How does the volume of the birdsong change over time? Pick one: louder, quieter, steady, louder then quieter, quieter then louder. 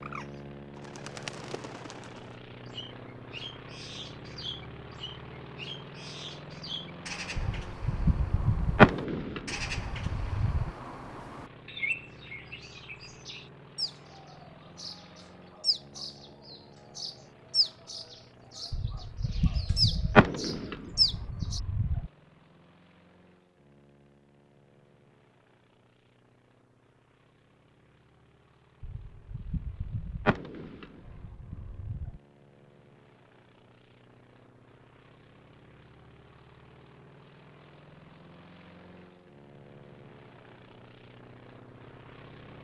louder.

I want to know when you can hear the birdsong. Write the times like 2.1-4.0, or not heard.
0.0-21.6.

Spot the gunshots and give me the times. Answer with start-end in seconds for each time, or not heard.
7.3-10.7, 18.7-22.1, 28.8-32.2.